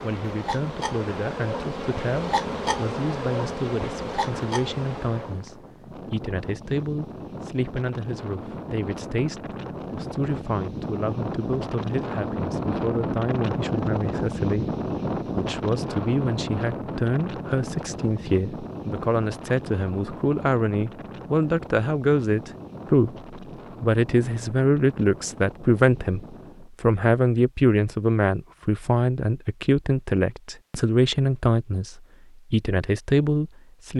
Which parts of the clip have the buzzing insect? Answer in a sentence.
The buzzing insect can be heard from 0.0 to 5.5 s.